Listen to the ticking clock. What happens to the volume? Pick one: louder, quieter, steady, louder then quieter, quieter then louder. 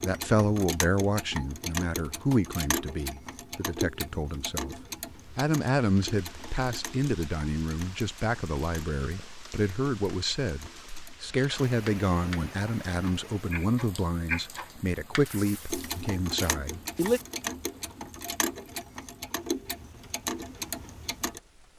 quieter then louder.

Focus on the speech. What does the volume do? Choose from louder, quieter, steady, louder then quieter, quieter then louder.
steady.